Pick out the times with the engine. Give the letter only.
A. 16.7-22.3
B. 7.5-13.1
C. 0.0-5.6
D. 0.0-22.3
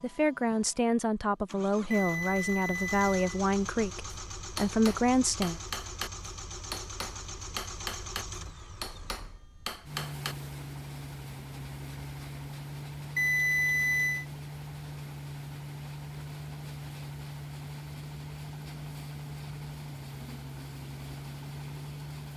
D.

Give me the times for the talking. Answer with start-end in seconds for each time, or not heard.
0.0-5.6.